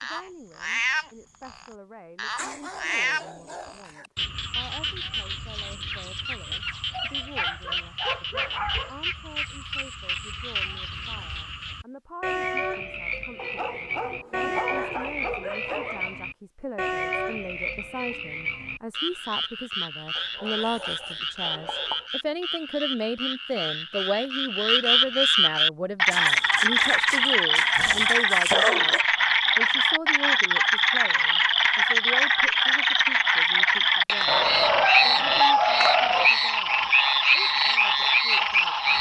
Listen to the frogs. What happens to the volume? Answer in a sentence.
The volume of the frogs goes up.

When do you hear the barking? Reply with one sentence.
The barking can be heard from 2.4 to 4.1 s, from 6.5 to 8.9 s, from 13.3 to 16.2 s, from 20.1 to 22.1 s, from 26.1 to 29.0 s and from 34.2 to 36.3 s.